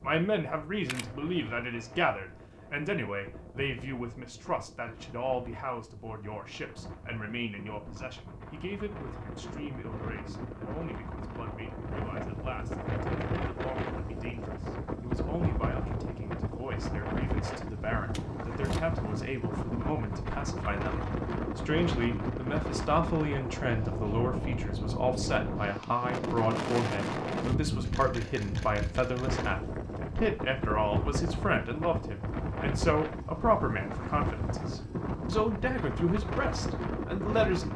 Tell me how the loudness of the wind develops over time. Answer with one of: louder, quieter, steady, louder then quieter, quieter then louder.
louder.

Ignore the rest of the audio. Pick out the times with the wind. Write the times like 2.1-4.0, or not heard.
0.0-37.7.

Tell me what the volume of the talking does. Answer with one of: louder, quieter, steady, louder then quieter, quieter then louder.
quieter then louder.